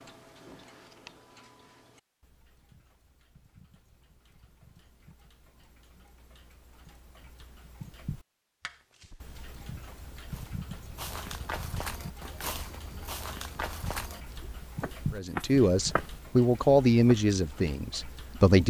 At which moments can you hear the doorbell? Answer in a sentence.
You can't hear the doorbell here.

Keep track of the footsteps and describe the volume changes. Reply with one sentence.
The loudness of the footsteps goes up.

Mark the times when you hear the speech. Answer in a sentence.
The speech can be heard from 15.1 to 18.6 s.